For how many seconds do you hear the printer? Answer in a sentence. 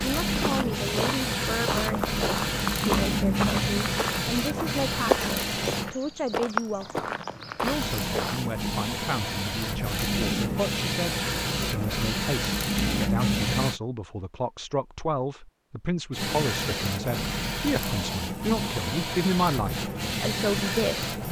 The printer can be heard for 17 seconds in total.